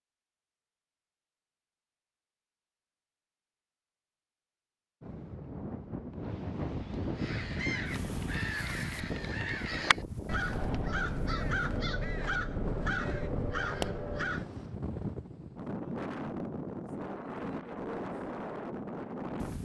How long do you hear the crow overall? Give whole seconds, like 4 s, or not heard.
7 s.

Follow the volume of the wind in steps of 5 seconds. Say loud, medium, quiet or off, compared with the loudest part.
off, loud, loud, loud.